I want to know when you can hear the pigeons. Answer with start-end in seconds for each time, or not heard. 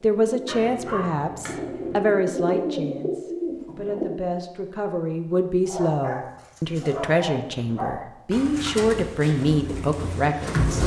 0.2-4.1, 8.3-10.8.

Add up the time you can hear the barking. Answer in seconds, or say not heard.
4 s.